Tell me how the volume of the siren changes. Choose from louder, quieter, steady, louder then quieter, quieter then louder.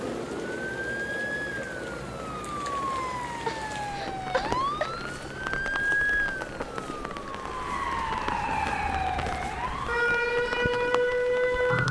louder.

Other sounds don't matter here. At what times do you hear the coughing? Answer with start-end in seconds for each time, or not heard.
3.5-5.0.